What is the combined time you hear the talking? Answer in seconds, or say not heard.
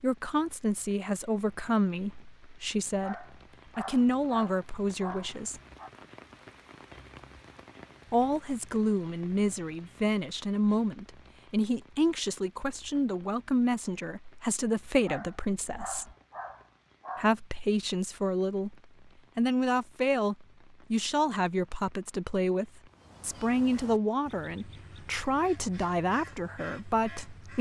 23 s.